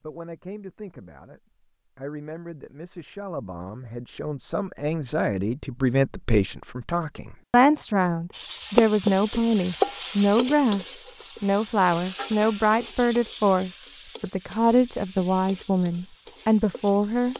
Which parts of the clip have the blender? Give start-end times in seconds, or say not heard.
not heard.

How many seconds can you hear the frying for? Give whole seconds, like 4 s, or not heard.
9 s.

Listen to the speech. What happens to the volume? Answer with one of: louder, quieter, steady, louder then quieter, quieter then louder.
louder.